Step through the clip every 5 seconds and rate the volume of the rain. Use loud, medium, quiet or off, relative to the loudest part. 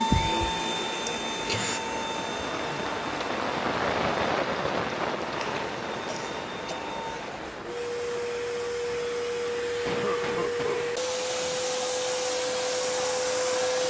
loud, medium, quiet.